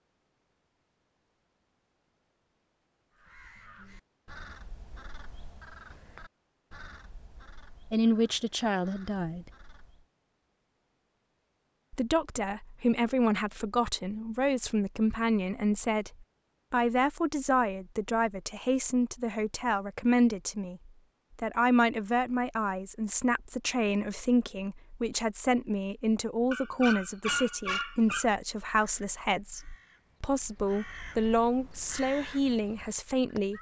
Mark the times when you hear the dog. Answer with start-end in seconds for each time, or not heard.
26.5-28.2.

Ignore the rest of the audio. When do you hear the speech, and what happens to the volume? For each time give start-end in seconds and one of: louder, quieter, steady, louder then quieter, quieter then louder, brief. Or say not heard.
7.9-9.4 brief
11.9-33.5 steady.